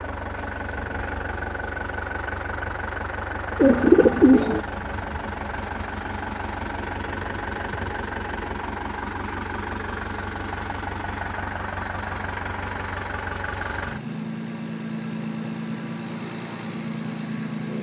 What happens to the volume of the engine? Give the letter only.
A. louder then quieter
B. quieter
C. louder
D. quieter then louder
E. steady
E.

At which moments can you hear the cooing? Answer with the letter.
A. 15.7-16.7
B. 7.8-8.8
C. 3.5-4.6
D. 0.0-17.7
C.